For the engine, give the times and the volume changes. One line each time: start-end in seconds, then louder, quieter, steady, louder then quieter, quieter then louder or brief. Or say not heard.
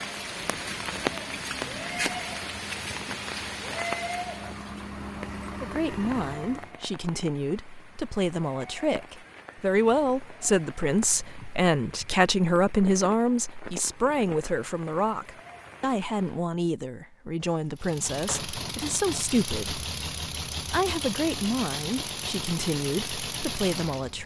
0.0-6.8 louder
17.8-24.2 steady.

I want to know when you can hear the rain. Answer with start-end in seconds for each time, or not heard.
0.0-16.5.